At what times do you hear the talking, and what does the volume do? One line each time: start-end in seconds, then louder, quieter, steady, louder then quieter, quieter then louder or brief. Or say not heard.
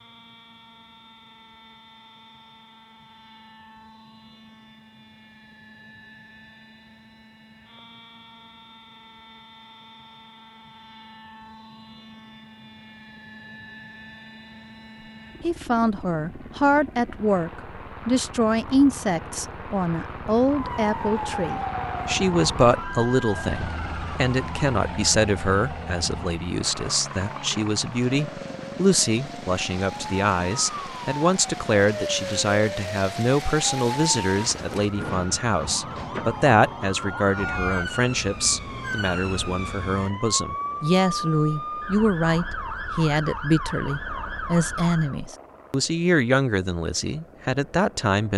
15.4-48.3 steady.